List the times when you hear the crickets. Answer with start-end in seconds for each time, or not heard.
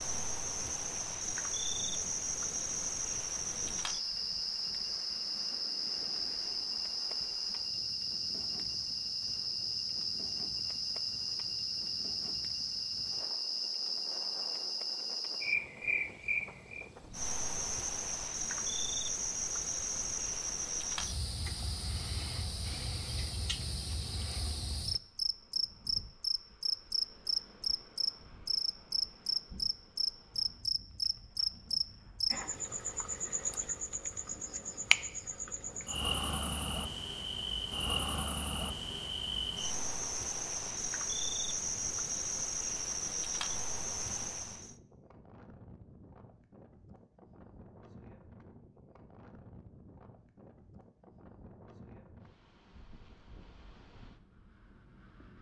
0.0-44.8.